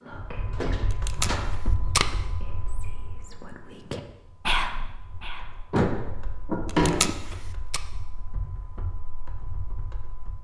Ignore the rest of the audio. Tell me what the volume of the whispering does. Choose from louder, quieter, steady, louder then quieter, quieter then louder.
quieter then louder.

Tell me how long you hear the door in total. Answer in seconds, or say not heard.
3 s.